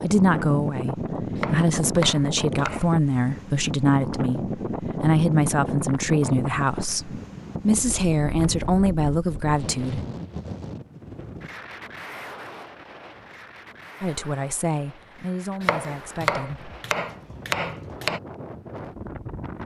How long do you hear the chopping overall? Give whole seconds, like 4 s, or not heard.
4 s.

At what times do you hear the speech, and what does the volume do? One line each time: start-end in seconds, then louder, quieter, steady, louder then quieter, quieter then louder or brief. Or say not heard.
0.0-10.0 steady
14.0-16.7 brief.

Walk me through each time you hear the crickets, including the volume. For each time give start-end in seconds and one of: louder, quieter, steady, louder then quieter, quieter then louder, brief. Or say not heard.
not heard.